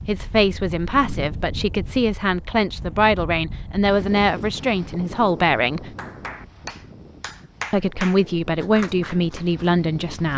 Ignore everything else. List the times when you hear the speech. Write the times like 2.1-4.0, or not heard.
0.0-5.9, 7.7-10.3.